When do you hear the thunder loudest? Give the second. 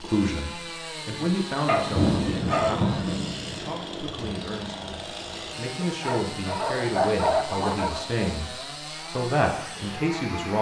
2 s.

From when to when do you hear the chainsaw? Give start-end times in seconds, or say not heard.
0.0-10.5.